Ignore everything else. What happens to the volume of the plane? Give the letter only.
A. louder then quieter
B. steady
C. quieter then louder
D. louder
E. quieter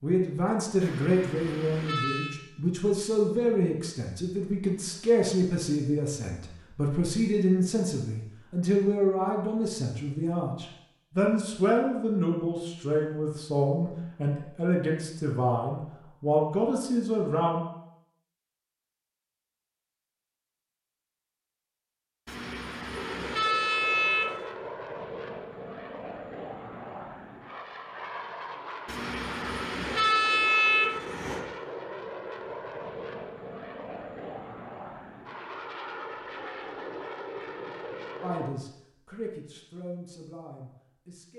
B.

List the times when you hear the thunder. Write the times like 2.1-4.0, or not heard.
not heard.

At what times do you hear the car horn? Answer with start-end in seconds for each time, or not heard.
0.8-2.4, 22.2-24.4, 28.9-31.4.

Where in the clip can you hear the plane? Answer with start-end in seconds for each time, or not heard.
22.9-38.5.